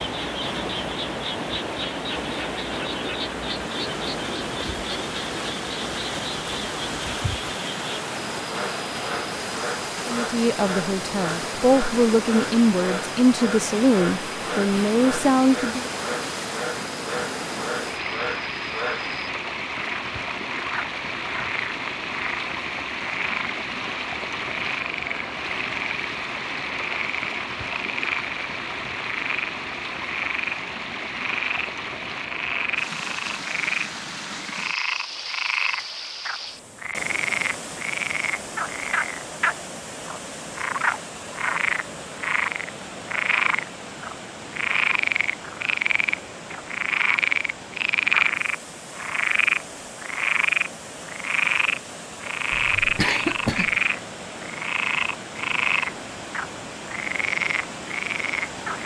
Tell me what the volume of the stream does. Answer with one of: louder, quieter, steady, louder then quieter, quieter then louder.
quieter.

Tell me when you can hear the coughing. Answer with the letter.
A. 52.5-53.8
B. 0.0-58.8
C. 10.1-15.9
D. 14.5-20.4
A.